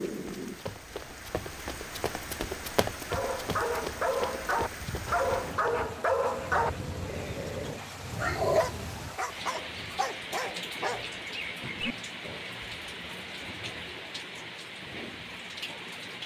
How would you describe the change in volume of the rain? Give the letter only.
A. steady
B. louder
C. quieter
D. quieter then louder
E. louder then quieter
A.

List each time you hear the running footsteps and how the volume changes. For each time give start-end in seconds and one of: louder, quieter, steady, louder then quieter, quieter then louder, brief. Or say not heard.
0.1-5.8 louder then quieter.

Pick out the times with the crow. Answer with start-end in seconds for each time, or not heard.
not heard.